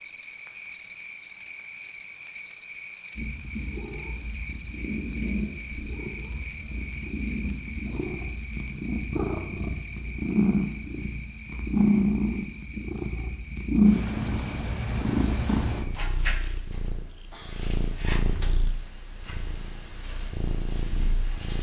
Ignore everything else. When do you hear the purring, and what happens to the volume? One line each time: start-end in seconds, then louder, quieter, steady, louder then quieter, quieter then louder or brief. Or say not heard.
3.1-21.5 louder then quieter.